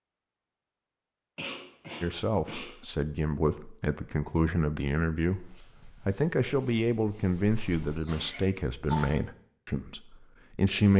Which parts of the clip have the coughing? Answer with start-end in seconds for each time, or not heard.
1.4-2.7, 7.8-9.1.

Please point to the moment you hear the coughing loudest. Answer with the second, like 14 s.
9 s.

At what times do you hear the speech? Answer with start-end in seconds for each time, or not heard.
2.0-10.9.